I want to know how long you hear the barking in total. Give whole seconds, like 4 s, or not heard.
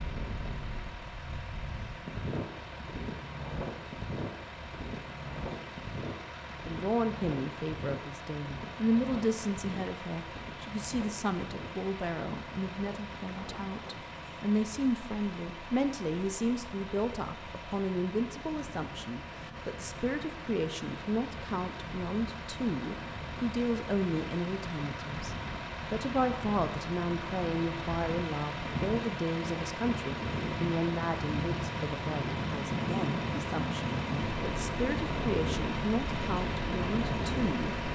not heard.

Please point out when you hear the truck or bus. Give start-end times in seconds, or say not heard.
0.0-37.9.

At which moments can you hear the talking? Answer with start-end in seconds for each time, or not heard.
6.7-37.8.